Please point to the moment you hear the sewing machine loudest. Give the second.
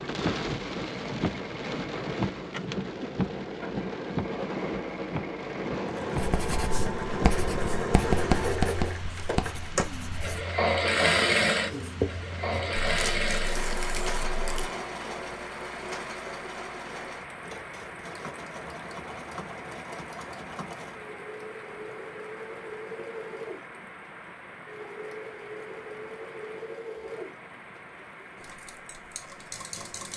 11 s.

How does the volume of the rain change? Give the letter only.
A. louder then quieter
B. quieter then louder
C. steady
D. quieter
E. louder
D.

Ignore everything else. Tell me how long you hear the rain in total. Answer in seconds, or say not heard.
30 s.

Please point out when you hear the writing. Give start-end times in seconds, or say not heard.
6.2-12.7.